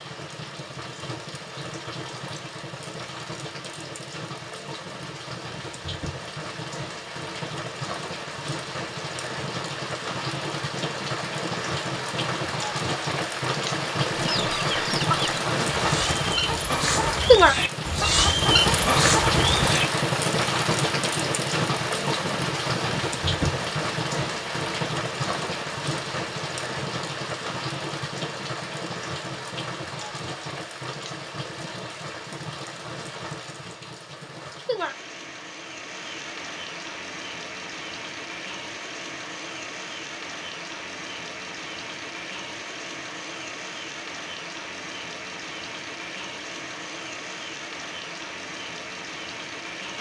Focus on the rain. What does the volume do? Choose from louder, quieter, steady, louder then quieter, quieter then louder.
louder then quieter.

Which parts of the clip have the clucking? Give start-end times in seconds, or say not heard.
14.3-19.9.